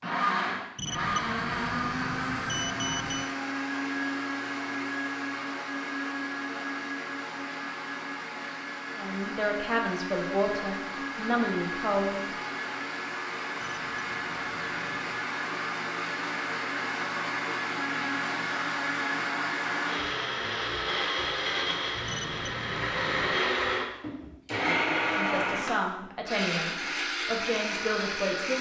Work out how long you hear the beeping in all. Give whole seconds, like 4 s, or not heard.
6 s.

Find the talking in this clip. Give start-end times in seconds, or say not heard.
8.9-12.2, 25.1-28.5.